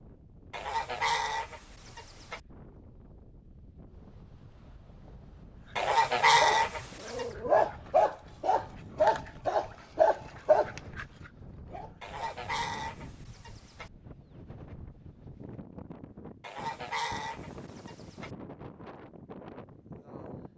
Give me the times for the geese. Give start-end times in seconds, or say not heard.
0.5-2.4, 5.8-7.2, 12.0-13.9, 16.4-18.3.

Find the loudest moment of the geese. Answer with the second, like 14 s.
6 s.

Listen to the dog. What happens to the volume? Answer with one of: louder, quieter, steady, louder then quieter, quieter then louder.
louder then quieter.